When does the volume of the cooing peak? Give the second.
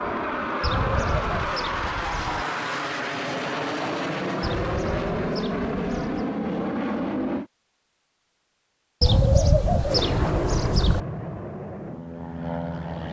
9 s.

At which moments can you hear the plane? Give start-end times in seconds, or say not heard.
0.0-7.5, 9.8-13.0.